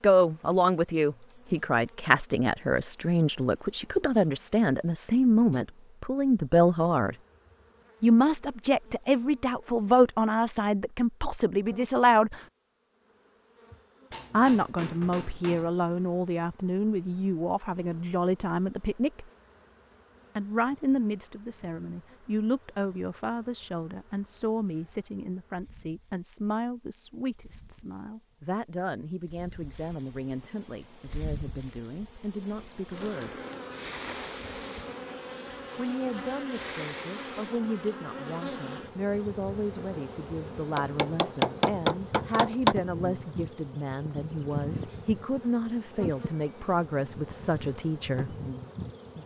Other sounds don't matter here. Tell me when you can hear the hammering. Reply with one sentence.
The hammering can be heard from 14.1 to 15.7 s and from 40.8 to 42.8 s.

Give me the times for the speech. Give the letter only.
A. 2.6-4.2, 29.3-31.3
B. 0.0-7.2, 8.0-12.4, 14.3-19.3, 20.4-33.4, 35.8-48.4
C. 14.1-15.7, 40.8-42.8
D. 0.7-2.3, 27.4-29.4
B.